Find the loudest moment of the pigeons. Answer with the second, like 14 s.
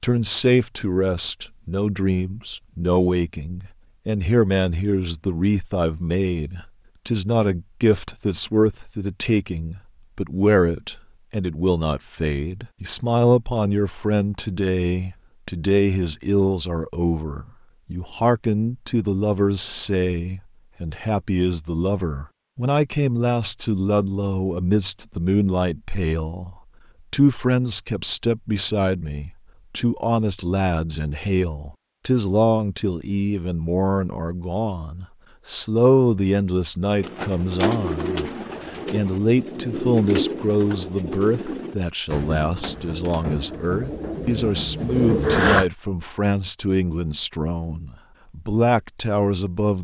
45 s.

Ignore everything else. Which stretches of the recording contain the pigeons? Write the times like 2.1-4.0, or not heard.
37.0-45.6.